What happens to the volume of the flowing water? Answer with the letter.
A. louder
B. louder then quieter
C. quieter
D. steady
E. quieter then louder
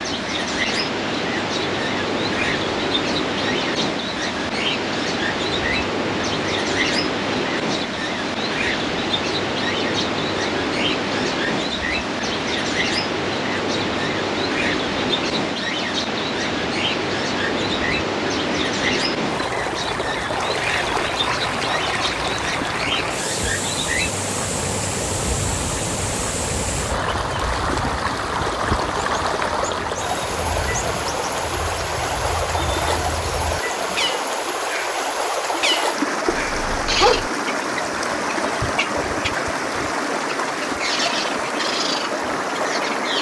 D.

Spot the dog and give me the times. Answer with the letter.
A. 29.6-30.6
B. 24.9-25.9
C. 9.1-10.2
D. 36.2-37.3
D.